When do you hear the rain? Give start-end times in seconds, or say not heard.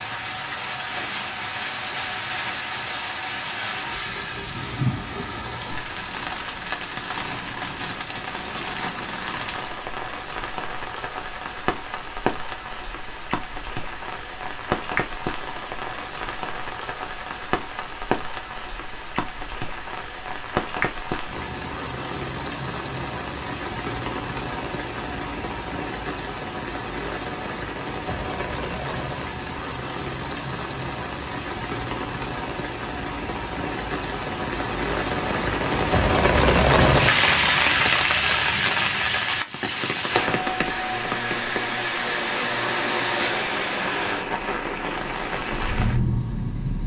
0.0-46.8.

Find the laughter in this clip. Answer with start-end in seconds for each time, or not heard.
not heard.